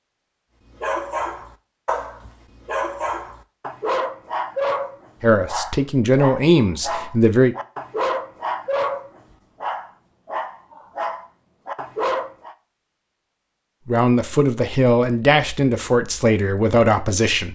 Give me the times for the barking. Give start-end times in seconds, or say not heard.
0.8-12.6.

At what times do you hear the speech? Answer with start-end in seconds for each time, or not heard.
5.2-7.5, 13.8-17.5.